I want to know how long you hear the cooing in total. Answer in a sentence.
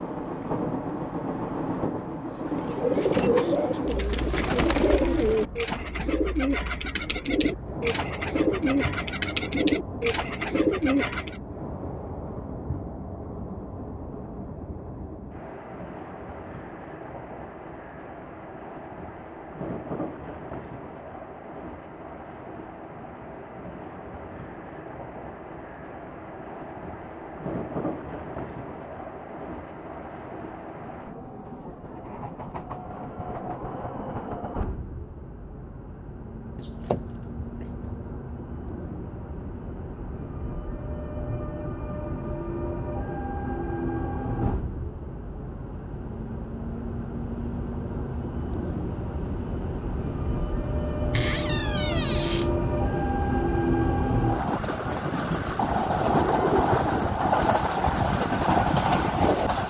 You can hear the cooing for 9 seconds altogether.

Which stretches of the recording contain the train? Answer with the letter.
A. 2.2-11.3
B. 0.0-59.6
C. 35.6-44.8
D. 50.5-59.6
B.